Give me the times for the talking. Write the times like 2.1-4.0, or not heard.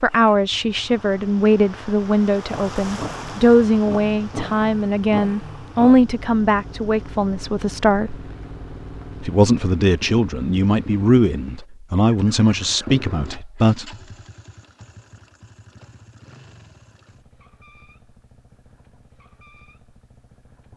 0.0-8.2, 9.2-13.8.